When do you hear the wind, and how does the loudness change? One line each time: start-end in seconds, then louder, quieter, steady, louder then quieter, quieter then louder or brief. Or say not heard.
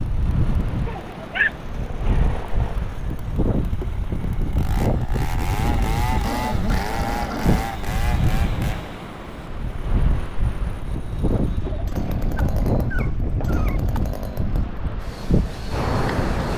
0.0-16.5 steady.